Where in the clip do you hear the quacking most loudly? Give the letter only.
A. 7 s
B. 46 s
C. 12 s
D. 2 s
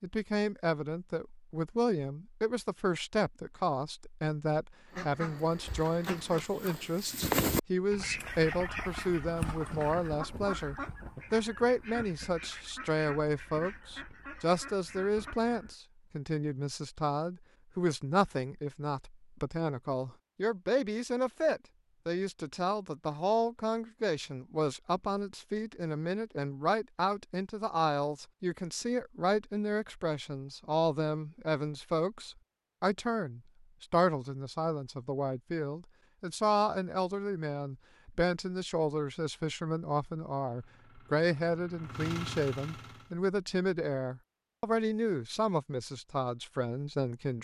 A.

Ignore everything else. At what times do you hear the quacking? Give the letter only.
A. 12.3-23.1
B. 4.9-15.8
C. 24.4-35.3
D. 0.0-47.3
B.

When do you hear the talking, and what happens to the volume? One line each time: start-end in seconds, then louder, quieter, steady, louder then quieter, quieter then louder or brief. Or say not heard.
0.0-47.3 steady.